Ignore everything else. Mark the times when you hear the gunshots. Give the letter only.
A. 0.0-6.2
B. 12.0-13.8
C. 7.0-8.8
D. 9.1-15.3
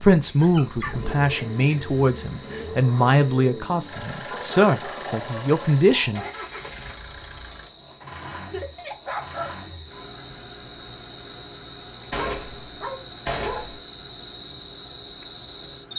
B.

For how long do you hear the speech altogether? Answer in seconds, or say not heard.
6 s.